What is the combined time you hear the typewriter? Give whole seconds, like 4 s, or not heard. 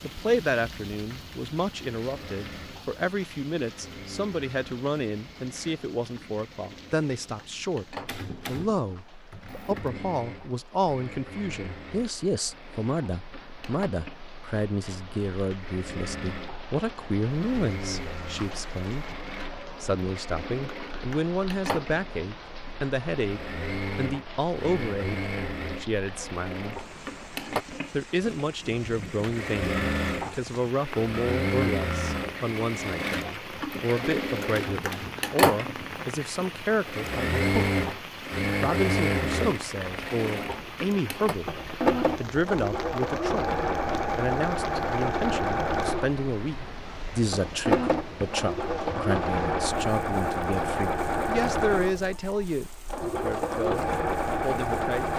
4 s.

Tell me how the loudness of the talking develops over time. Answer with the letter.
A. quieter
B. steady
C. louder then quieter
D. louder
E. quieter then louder
B.